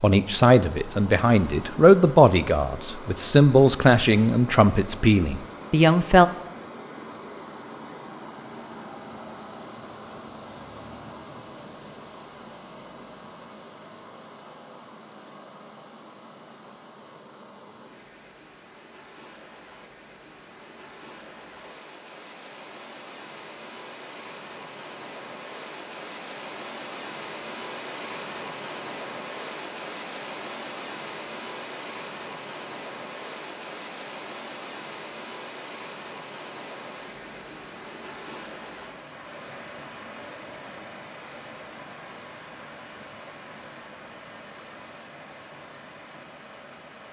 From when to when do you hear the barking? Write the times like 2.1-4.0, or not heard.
not heard.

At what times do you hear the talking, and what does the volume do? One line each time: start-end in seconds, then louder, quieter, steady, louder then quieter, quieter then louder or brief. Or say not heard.
0.0-6.3 steady.